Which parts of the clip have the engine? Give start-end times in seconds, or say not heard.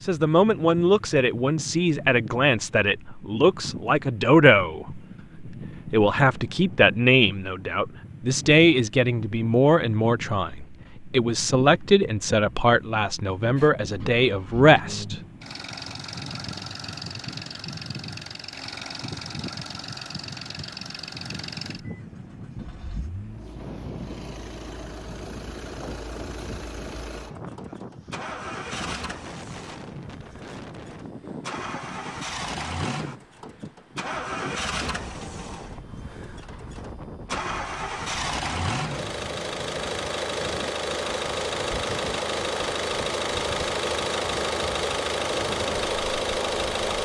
13.6-46.9.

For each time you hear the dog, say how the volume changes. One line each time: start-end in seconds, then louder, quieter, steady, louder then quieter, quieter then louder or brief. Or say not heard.
not heard.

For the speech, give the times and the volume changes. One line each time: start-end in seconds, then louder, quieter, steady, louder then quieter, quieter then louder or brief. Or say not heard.
0.0-15.2 steady.